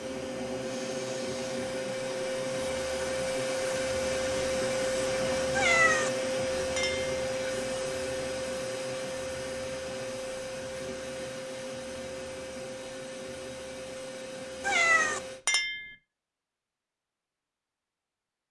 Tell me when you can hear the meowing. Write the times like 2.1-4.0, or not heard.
5.5-6.1, 14.6-15.2.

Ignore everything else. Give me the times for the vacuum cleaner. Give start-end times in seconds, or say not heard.
0.0-15.4.